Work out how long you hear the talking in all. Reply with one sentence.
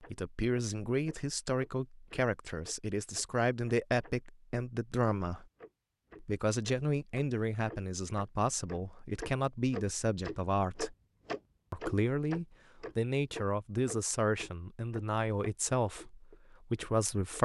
You can hear the talking for 16 seconds altogether.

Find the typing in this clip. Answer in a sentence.
The typing can't be heard in this clip.